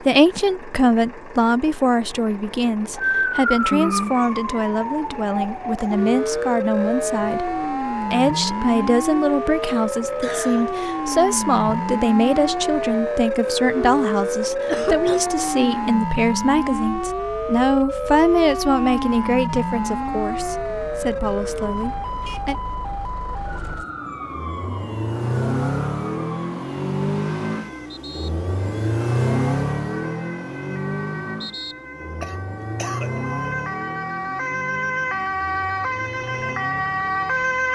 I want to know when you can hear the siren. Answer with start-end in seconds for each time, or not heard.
3.0-37.7.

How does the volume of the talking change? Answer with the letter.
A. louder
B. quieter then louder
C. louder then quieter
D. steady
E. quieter
D.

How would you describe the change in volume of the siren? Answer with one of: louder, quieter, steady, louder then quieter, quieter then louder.
quieter then louder.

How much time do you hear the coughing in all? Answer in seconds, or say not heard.
3 s.